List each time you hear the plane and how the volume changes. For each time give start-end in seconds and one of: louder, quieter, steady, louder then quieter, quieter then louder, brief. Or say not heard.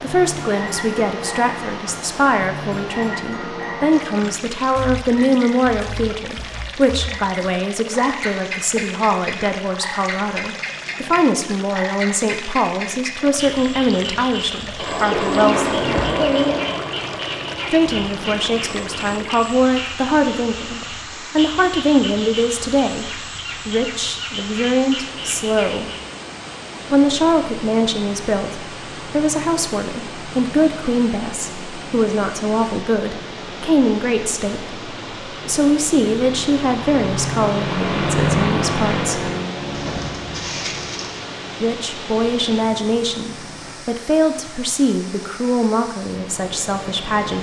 14.8-19.3 quieter
26.8-43.8 louder then quieter.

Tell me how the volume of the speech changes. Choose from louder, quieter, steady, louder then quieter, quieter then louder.
steady.